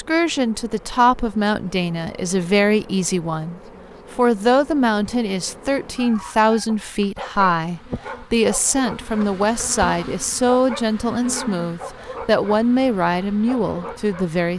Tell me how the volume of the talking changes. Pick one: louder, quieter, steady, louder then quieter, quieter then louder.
steady.